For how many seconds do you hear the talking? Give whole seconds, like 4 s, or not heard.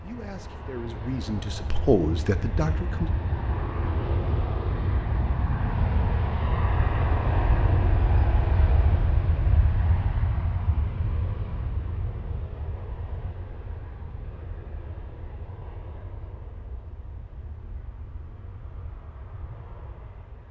3 s.